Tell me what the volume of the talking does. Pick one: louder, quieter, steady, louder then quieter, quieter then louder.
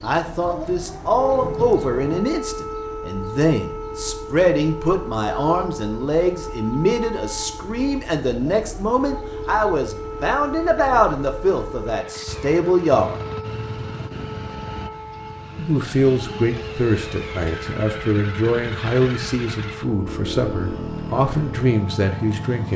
steady.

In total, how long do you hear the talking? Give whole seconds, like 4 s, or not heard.
20 s.